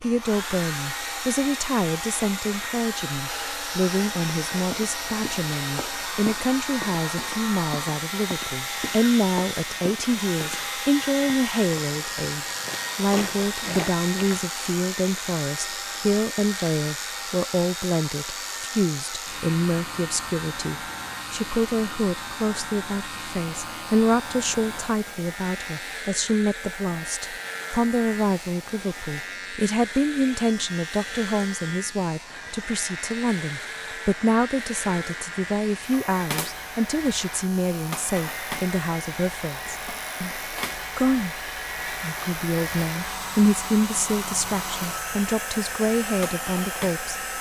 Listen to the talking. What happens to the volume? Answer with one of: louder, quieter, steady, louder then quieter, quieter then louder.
steady.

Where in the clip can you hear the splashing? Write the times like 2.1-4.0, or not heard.
not heard.